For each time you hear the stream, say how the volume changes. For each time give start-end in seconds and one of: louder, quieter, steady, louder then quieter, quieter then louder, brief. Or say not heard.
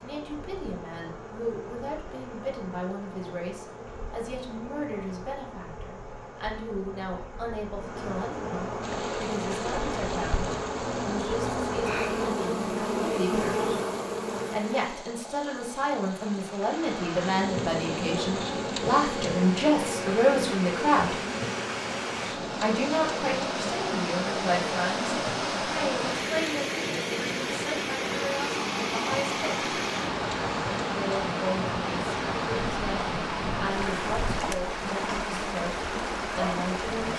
8.8-37.1 louder.